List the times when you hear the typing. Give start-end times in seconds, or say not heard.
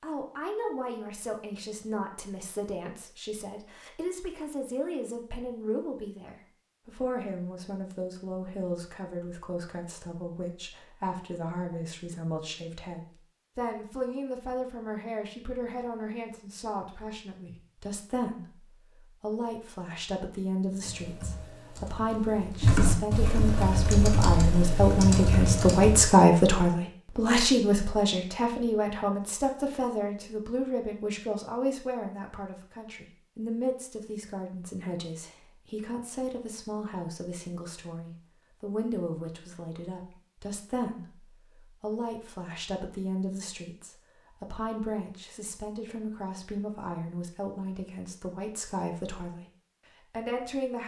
20.7-26.1.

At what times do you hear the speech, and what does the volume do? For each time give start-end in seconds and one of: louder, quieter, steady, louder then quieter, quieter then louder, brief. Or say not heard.
0.0-49.5 louder then quieter
50.1-50.8 brief.